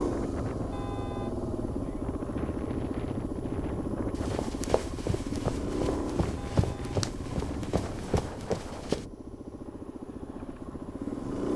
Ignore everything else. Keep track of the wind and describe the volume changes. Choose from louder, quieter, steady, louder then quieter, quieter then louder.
quieter.